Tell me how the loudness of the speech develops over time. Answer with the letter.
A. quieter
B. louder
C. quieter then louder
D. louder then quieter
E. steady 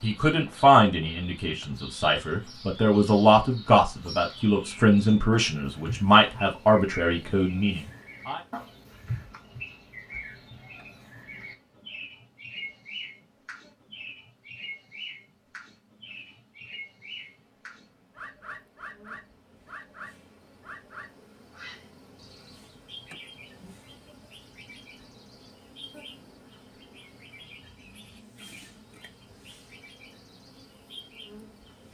E.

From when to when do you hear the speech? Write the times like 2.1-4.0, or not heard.
0.0-8.4.